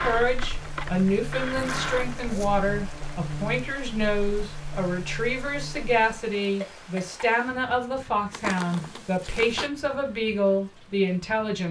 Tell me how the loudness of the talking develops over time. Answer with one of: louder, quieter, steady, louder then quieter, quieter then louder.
steady.